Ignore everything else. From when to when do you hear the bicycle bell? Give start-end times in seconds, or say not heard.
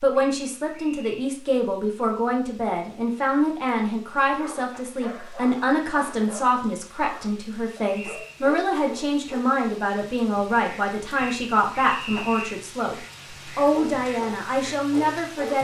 not heard.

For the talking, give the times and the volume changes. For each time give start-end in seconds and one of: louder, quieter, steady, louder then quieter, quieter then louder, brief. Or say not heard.
0.0-12.9 steady
13.6-15.6 brief.